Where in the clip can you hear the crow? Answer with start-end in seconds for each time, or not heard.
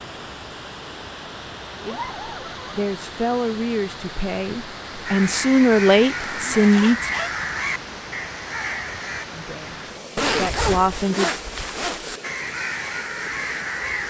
5.0-9.2, 12.2-14.0.